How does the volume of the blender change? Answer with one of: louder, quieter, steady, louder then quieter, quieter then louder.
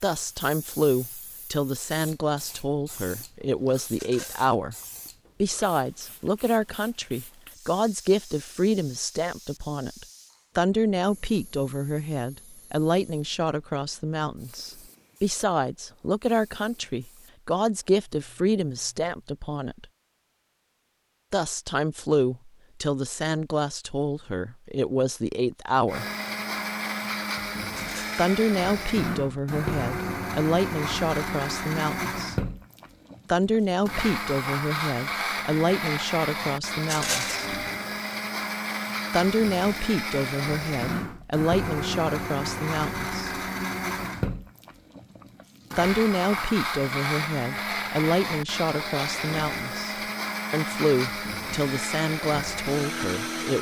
steady.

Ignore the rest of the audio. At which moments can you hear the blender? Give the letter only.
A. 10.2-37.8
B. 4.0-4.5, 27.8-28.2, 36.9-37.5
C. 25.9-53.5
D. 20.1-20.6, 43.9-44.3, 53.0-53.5
C.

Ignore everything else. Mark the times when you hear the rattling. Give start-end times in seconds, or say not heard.
4.0-4.5, 27.8-28.2, 36.9-37.5.